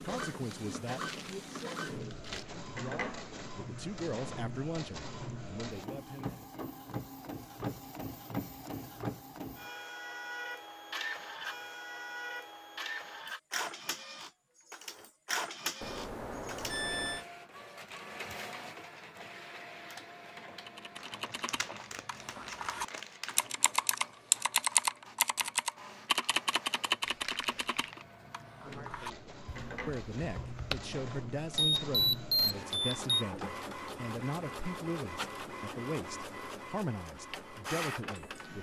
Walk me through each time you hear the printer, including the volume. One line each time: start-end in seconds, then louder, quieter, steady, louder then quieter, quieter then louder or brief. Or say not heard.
0.0-38.5 quieter then louder.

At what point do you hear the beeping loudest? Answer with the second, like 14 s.
32 s.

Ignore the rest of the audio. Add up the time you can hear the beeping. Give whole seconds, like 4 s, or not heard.
3 s.